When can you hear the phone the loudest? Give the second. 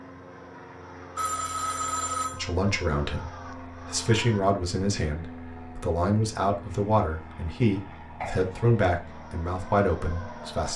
2 s.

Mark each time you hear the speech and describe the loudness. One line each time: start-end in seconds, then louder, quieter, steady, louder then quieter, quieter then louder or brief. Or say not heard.
2.3-10.7 steady.